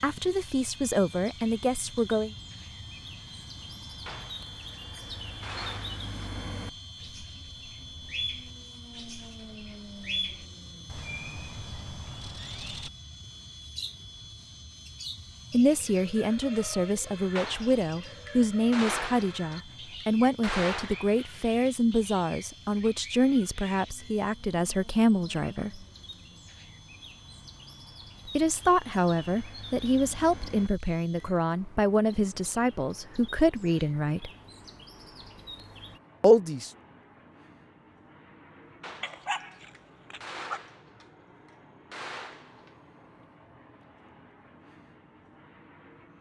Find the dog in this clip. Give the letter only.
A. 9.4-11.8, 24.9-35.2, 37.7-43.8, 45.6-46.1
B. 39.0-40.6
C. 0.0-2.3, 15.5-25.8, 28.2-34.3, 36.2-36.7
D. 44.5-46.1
B.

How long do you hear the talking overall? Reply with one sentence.
You can hear the talking for 19 seconds altogether.